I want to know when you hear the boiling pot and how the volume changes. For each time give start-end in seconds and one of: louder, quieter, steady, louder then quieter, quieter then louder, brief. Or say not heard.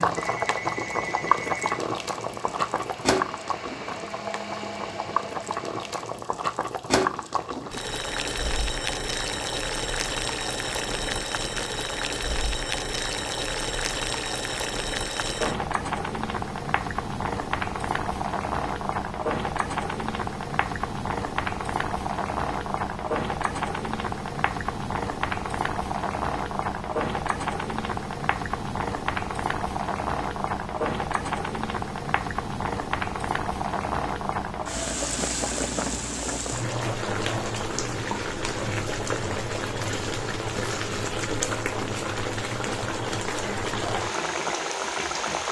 0.0-45.4 steady.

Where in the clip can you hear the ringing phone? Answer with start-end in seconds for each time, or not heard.
0.1-1.6.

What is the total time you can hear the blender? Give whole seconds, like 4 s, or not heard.
6 s.